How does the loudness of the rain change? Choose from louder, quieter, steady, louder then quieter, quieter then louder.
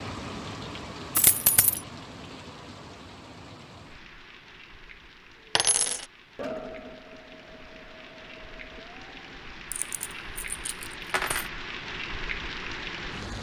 quieter then louder.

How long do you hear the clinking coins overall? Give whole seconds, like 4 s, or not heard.
3 s.